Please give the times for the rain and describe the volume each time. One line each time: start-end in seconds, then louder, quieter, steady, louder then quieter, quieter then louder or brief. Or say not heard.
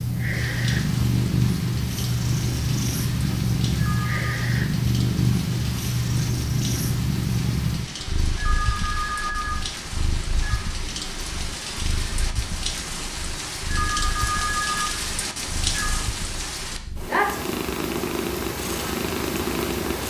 0.2-20.0 louder.